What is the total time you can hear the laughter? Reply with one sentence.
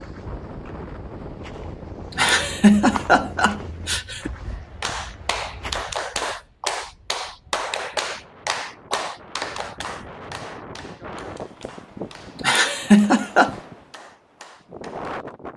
You can hear the laughter for 3 seconds altogether.